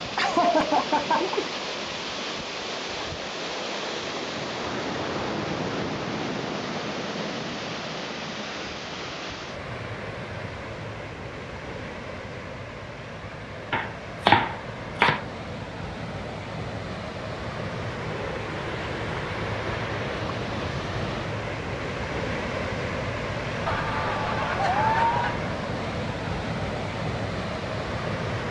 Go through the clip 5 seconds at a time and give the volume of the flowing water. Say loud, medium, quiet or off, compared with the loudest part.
loud, loud, medium, loud, loud, loud.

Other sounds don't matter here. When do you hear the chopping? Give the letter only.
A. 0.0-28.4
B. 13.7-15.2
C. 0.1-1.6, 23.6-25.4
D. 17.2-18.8
B.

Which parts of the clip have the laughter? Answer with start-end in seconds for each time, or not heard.
0.1-1.6, 23.6-25.4.